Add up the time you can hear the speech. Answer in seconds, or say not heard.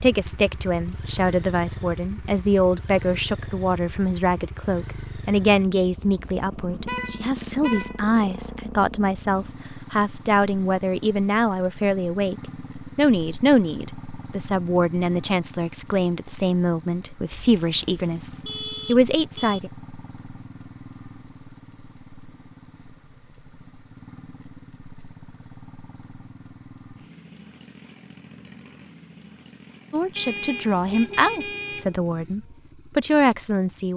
24 s.